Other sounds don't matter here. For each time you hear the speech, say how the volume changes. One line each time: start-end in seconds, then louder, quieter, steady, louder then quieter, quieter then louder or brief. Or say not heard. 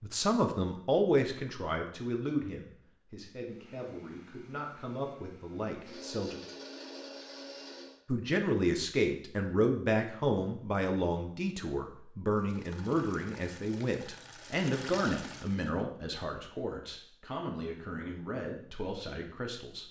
0.0-6.4 quieter then louder
8.1-19.8 quieter.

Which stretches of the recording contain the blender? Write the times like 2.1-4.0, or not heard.
3.4-8.0.